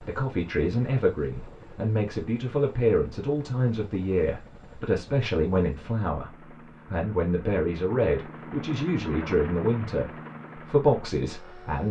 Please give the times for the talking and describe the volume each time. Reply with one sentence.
The talking can be heard from 0.0 to 11.8 s, at a steady volume.